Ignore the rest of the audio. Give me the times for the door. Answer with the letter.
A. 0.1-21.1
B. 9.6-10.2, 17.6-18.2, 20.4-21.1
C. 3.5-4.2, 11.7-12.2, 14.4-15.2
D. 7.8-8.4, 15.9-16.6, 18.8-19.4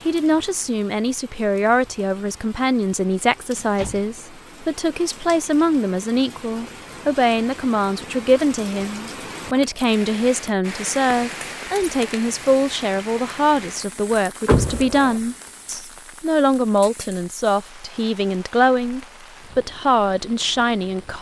C.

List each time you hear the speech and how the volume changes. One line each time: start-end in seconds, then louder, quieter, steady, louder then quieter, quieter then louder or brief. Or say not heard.
0.1-21.1 steady.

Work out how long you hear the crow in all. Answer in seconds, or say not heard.
not heard.